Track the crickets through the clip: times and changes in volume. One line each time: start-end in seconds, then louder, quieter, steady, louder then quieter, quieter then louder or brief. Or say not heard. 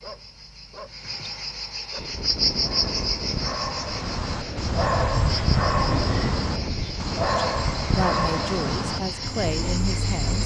0.0-10.4 louder then quieter.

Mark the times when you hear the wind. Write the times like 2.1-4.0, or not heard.
1.9-10.4.